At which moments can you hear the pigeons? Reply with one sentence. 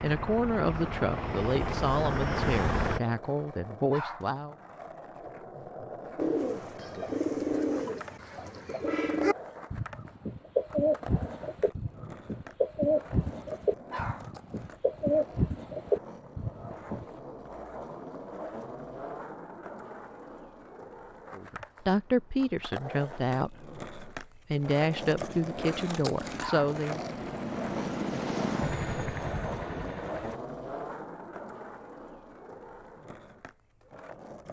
The pigeons can be heard from 6.2 to 17.1 s.